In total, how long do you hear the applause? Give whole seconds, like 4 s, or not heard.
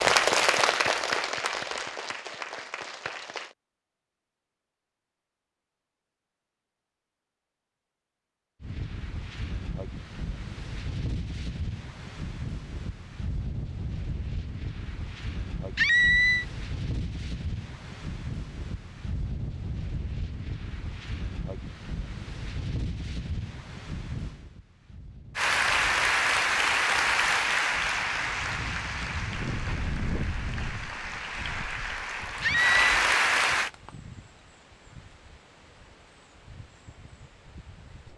12 s.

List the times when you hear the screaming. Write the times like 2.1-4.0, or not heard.
15.8-16.4, 32.4-33.0.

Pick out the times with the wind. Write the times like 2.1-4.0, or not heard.
8.6-38.1.